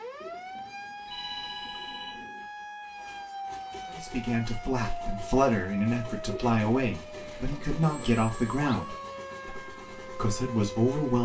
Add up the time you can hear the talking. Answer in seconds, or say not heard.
7 s.